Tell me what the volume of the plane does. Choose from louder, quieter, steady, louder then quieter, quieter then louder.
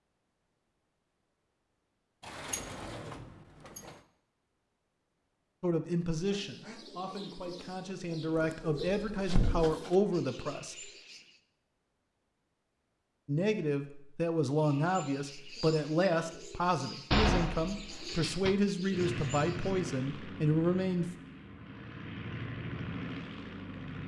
quieter then louder.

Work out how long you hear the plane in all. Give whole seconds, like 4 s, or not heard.
5 s.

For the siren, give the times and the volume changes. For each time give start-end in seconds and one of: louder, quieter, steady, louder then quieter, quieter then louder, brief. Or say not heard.
not heard.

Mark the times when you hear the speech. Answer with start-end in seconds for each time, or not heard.
5.6-10.9, 13.2-21.1.